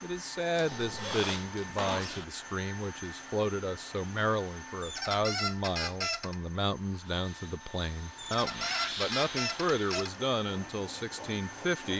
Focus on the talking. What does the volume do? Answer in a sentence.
The volume of the talking stays about the same.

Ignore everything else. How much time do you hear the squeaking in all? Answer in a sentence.
You can hear the squeaking for 5 seconds altogether.